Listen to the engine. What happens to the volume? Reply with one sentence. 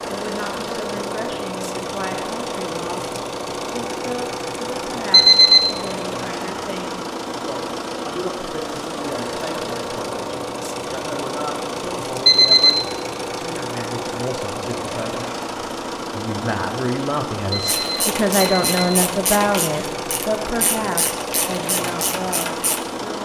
The loudness of the engine stays about the same.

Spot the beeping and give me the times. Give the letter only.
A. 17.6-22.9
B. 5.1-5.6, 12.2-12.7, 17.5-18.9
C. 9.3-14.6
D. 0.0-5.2
B.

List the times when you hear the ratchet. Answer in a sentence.
The ratchet can be heard from 17.6 to 22.9 s.